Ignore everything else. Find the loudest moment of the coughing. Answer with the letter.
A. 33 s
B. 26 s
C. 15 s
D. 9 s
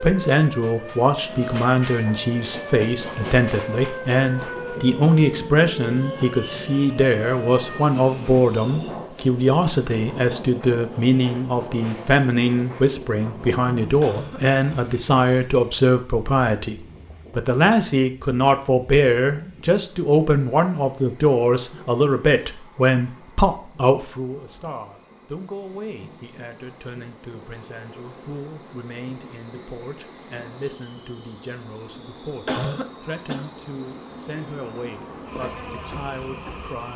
A.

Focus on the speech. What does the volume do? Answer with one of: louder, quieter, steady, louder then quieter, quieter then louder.
quieter.